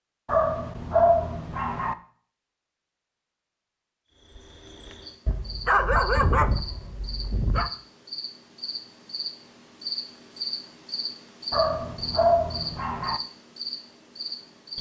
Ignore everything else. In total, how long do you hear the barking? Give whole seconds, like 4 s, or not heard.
6 s.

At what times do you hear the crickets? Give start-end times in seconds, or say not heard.
4.1-14.7.